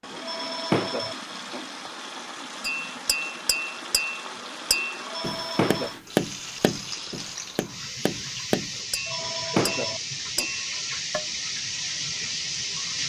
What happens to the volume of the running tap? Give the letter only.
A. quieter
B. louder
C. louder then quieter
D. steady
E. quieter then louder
B.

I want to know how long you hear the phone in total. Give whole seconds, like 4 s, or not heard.
4 s.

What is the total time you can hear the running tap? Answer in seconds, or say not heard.
13 s.